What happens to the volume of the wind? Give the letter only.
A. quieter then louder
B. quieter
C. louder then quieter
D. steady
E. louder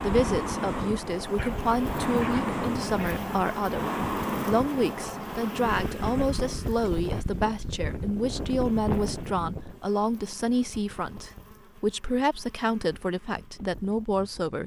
B.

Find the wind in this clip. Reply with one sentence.
You can hear the wind from 0.0 to 14.6 s.